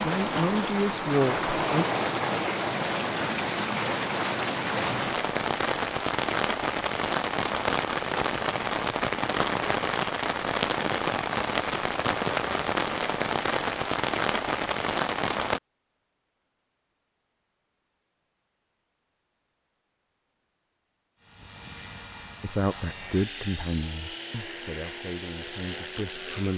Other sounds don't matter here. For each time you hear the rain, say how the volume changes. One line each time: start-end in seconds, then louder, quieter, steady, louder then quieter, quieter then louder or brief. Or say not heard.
0.0-15.6 steady.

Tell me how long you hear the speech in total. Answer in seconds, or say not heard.
6 s.